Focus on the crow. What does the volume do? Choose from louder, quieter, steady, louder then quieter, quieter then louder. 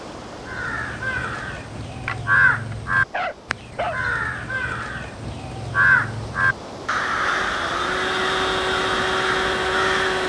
steady.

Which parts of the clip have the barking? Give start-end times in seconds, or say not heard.
2.0-4.0.